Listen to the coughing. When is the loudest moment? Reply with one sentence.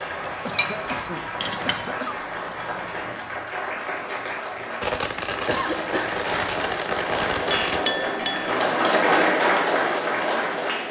The loudest moment of the coughing is at 6 seconds.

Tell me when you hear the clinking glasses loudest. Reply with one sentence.
The loudest moment of the clinking glasses is at 8 seconds.